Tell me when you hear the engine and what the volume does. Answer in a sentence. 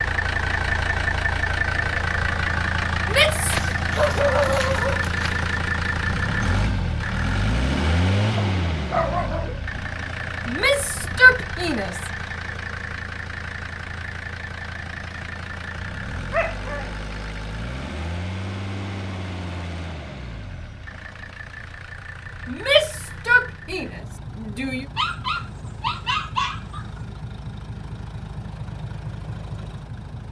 The engine can be heard from 0.0 to 30.2 s, getting quieter.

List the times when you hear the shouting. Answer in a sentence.
The shouting can be heard from 3.0 to 3.5 s, from 10.4 to 12.1 s and from 22.4 to 24.9 s.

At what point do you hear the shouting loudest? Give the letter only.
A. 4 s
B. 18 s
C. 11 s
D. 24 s
C.